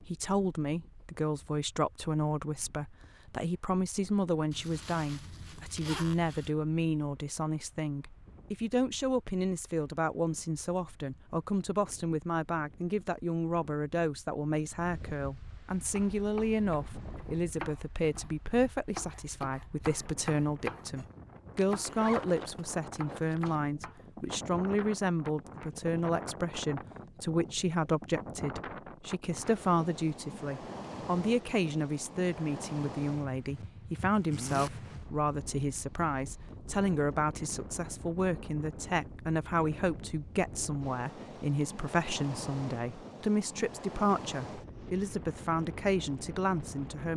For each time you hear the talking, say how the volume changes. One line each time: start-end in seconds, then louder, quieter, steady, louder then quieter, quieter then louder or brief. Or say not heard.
0.0-47.1 steady.